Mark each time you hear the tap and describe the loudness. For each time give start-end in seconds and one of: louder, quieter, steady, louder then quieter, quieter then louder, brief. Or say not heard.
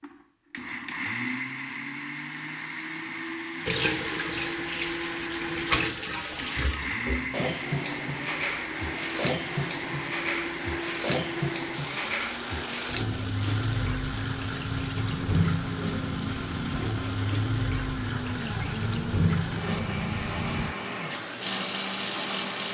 3.6-22.6 steady.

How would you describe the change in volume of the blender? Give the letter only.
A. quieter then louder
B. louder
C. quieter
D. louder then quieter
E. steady
E.